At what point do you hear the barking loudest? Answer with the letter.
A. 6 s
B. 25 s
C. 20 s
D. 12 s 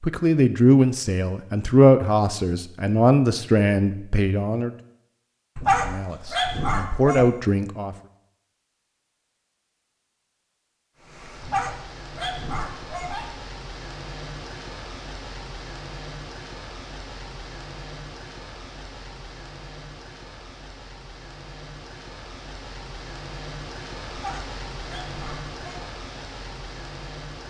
A.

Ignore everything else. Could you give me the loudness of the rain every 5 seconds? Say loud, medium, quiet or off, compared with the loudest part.
off, off, loud, loud, loud, loud.